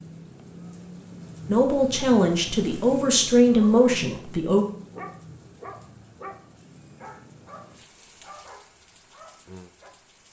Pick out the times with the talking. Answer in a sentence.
You can hear the talking from 1.4 to 4.7 s.